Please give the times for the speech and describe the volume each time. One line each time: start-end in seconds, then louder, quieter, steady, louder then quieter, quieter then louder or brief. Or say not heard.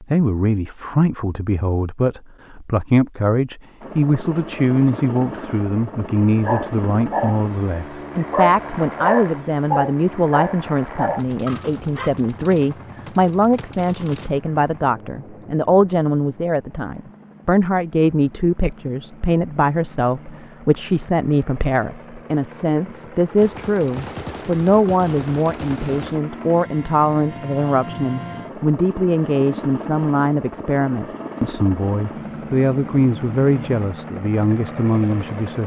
0.0-35.6 steady.